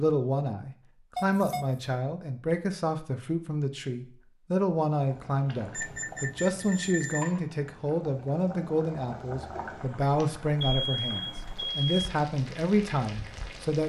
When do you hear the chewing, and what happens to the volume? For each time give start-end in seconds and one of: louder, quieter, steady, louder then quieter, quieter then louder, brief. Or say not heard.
not heard.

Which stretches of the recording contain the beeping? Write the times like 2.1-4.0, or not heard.
1.1-1.9, 5.7-7.3, 10.6-11.8.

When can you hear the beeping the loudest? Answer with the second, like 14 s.
11 s.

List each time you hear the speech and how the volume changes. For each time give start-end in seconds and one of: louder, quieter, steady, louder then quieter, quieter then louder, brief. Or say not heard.
0.0-13.8 steady.